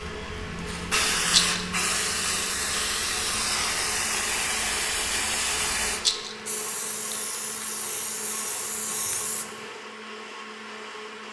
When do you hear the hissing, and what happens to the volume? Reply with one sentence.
You can hear the hissing from 0.0 to 9.6 s, getting quieter.